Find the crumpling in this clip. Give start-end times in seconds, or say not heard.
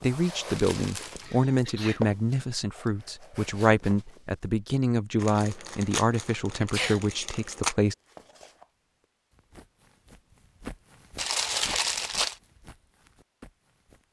0.6-1.4, 5.2-7.8, 11.2-12.3.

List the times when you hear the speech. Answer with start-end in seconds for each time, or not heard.
0.0-8.0.